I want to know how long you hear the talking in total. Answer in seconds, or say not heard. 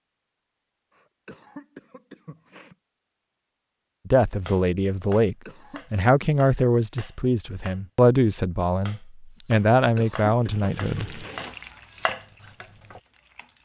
7 s.